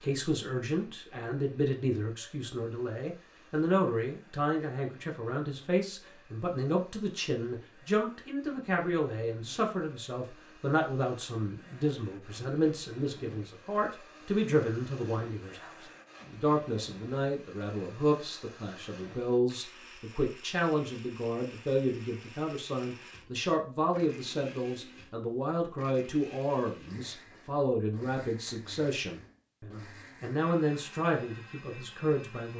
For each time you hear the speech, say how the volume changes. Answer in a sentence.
You can hear the speech from 0.0 to 32.5 s, at a steady volume.